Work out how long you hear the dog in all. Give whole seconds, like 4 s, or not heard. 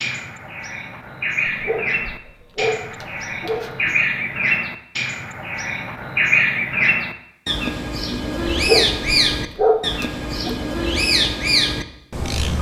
5 s.